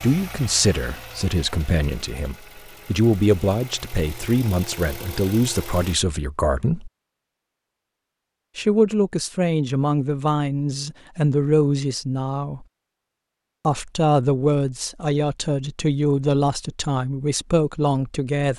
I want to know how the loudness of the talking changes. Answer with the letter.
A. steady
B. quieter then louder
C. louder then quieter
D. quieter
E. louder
A.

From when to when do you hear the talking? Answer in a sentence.
The talking can be heard from 0.0 to 6.9 s, from 8.6 to 12.7 s and from 13.7 to 18.5 s.